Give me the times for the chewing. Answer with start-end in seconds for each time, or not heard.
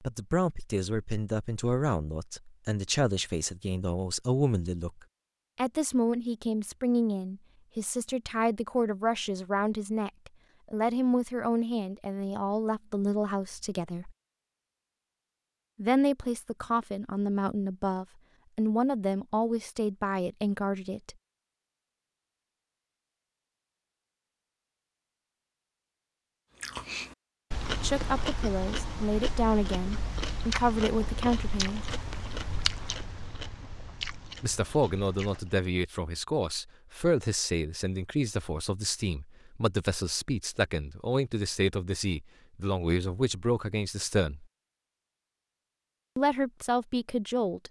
26.6-35.5.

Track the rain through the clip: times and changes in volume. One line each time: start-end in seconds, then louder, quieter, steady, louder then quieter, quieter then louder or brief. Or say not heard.
not heard.